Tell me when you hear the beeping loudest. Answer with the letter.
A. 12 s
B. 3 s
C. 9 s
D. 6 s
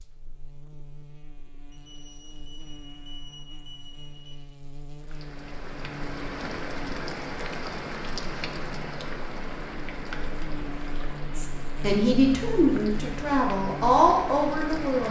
B.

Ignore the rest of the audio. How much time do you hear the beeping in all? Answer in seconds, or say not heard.
3 s.